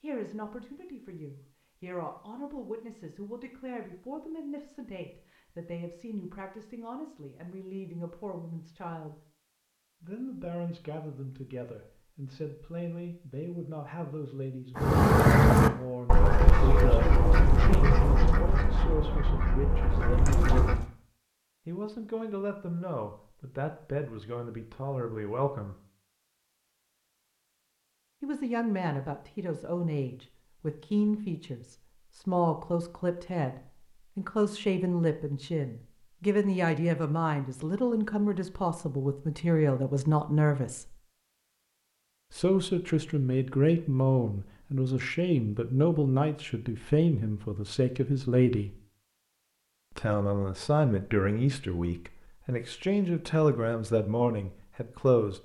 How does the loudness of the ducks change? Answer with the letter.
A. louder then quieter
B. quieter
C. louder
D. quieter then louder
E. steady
B.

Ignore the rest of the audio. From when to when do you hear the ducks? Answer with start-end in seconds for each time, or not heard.
14.8-20.9.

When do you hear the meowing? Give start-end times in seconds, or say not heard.
not heard.